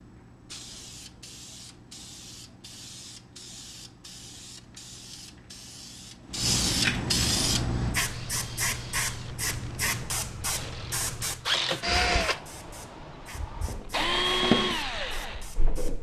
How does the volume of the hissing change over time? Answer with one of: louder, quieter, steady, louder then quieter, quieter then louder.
louder then quieter.